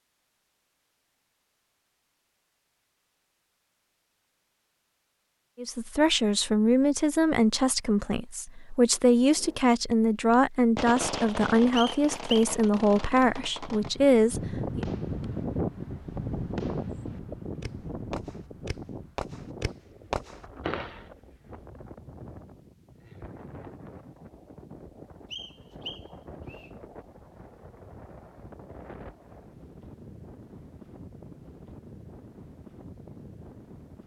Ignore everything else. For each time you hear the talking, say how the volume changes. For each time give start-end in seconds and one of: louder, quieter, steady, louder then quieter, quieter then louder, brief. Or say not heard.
5.5-14.8 steady.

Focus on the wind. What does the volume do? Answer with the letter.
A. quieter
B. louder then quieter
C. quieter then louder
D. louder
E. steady
A.